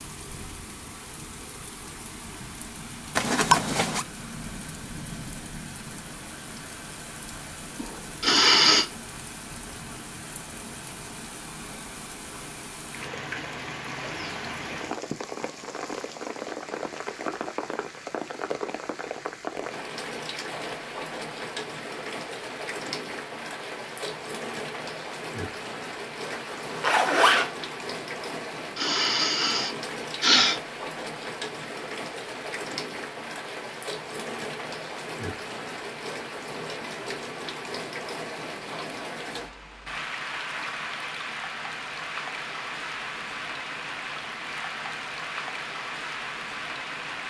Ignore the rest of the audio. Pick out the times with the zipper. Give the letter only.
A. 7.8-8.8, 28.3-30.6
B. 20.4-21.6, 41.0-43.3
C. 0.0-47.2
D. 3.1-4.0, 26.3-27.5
D.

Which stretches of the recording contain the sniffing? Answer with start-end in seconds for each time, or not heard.
7.8-8.8, 28.3-30.6.